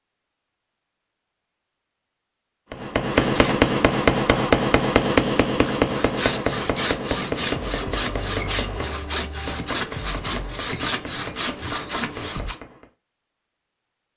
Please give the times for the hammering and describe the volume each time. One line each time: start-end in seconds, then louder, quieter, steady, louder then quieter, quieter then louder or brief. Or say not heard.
2.7-12.9 quieter.